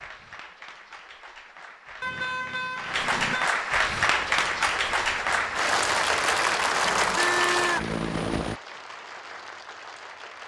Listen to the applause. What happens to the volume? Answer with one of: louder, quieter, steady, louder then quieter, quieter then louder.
louder then quieter.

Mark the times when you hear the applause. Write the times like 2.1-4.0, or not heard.
0.0-10.4.